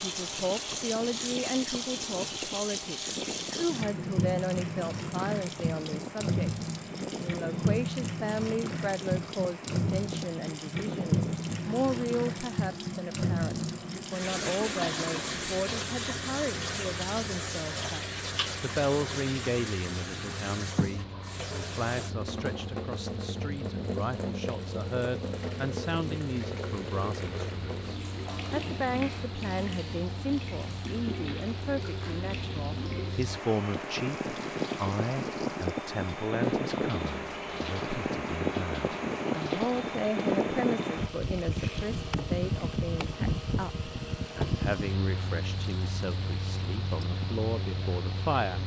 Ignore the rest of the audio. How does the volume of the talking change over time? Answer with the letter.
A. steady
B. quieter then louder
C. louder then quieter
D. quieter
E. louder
A.